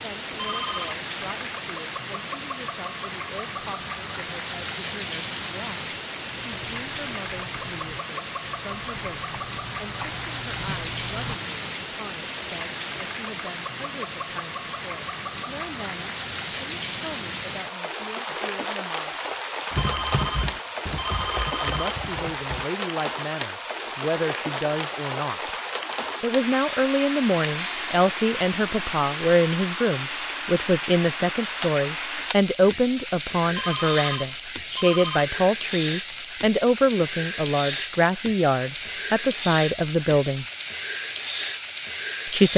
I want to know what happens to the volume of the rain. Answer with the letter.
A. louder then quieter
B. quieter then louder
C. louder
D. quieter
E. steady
E.